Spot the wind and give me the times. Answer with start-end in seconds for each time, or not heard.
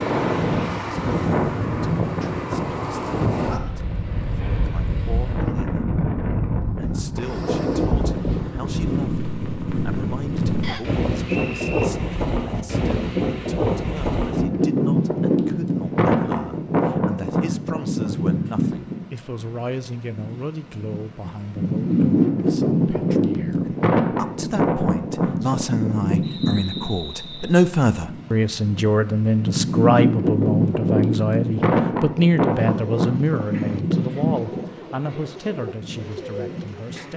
0.0-37.1.